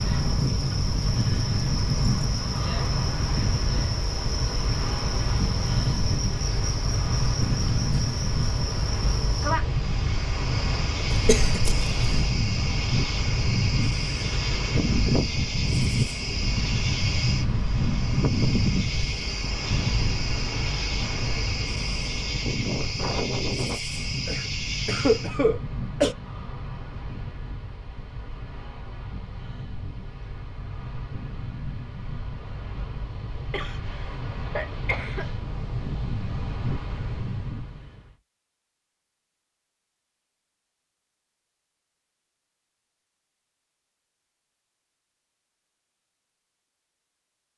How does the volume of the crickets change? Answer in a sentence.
The volume of the crickets stays about the same.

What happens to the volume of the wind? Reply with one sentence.
The volume of the wind goes down.